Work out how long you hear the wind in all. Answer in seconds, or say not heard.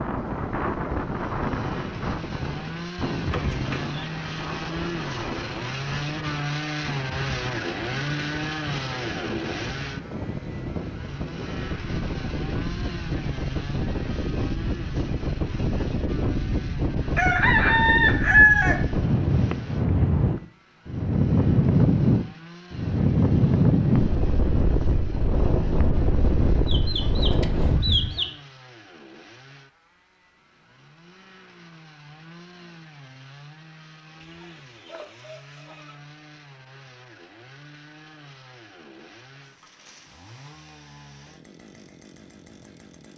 28 s.